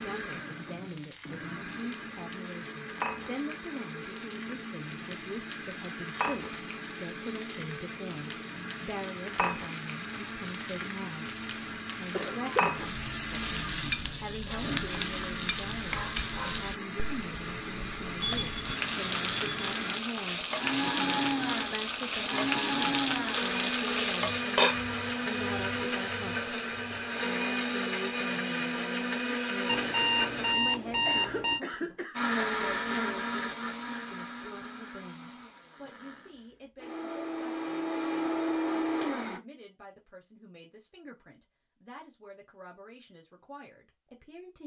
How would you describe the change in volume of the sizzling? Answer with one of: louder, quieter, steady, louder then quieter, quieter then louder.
louder.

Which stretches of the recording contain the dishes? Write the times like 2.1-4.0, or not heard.
not heard.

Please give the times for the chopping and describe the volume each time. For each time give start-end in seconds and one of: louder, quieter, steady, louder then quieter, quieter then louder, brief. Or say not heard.
not heard.